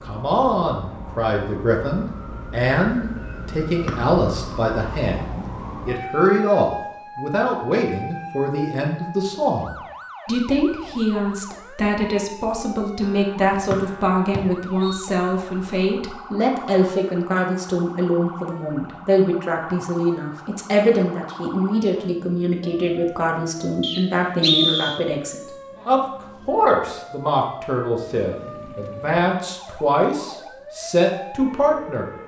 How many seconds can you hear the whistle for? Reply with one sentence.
You can hear the whistle for 3 seconds altogether.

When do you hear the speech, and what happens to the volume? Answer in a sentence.
You can hear the speech from 0.0 to 32.1 s, at a steady volume.